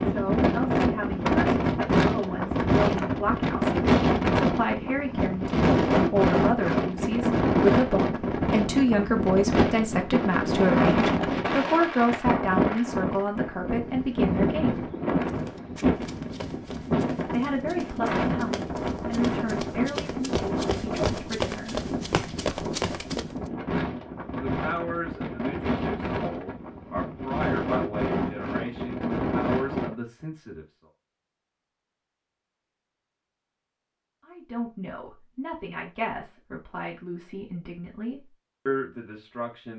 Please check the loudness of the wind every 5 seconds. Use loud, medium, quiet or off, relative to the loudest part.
loud, loud, loud, medium, medium, medium, off, off.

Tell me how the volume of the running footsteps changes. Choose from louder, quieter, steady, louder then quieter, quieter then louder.
louder.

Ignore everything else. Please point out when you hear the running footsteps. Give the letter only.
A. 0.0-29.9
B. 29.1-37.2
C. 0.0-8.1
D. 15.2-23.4
D.